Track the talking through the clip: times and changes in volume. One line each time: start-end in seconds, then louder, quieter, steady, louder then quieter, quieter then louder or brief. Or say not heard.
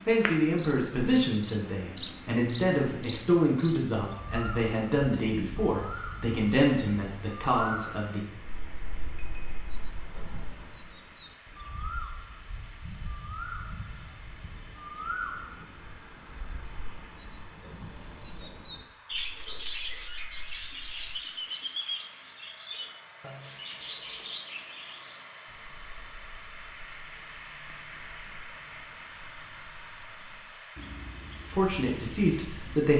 0.0-8.2 steady
31.4-32.9 brief.